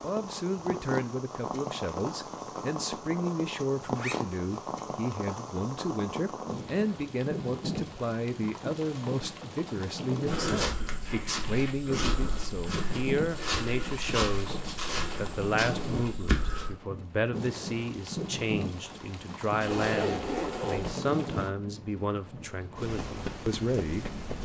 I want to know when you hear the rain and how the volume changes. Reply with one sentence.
The rain can be heard from 0.0 to 24.4 s, at a steady volume.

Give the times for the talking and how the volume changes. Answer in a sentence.
The talking can be heard from 0.0 to 24.4 s, at a steady volume.